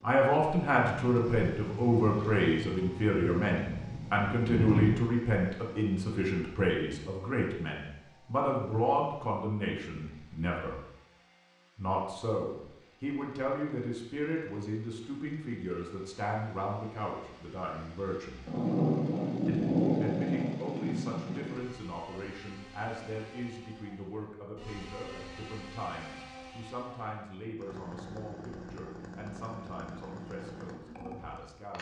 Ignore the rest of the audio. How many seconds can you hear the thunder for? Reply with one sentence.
You can hear the thunder for 7 seconds altogether.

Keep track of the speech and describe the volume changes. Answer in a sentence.
The loudness of the speech goes down.